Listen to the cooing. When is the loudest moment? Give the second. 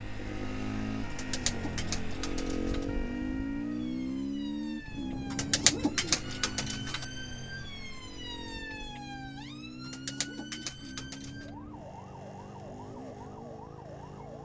6 s.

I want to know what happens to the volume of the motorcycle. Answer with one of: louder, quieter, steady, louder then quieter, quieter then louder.
quieter.